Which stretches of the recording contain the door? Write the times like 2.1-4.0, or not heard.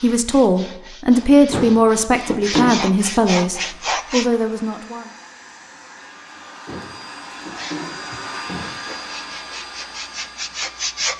1.5-2.9, 6.7-8.7.